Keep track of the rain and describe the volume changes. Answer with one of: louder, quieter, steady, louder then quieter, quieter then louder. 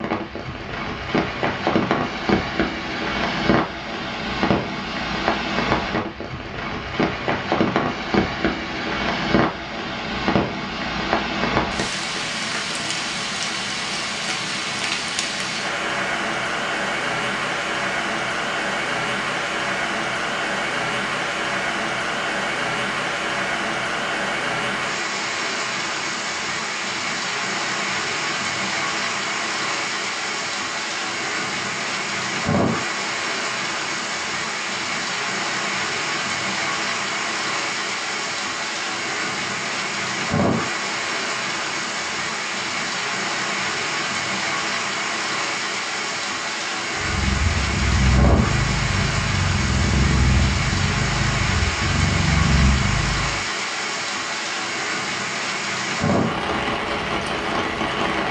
steady.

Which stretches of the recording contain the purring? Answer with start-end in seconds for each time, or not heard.
47.0-53.5.